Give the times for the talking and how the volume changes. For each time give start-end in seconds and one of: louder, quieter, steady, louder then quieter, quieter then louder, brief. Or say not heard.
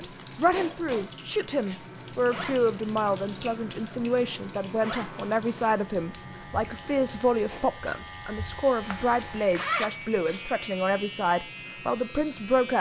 0.0-12.7 steady.